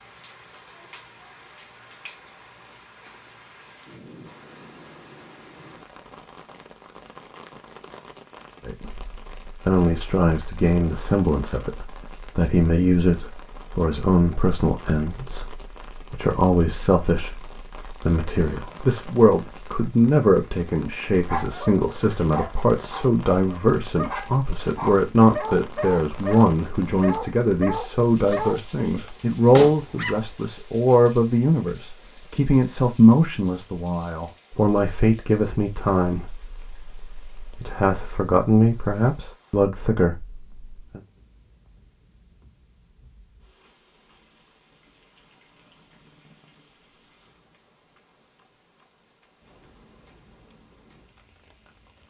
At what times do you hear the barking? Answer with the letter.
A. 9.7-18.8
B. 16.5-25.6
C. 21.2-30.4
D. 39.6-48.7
C.